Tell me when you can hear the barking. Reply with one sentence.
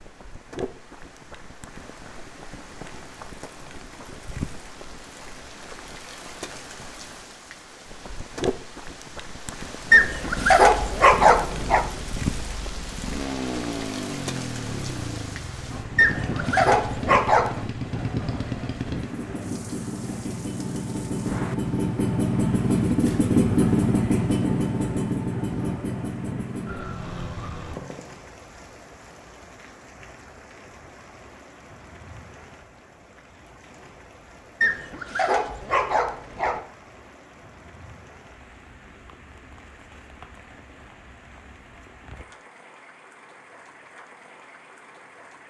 The barking can be heard from 9.9 to 11.8 s, from 15.9 to 17.6 s and from 34.6 to 36.6 s.